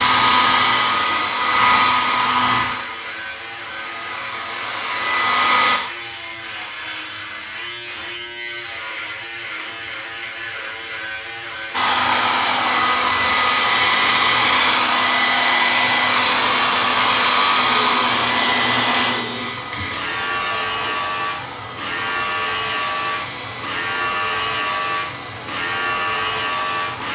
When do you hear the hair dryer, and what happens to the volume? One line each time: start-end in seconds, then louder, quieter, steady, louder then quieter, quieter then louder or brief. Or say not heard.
0.0-5.8 quieter then louder
11.7-27.1 quieter.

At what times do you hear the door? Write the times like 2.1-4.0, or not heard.
19.7-20.7.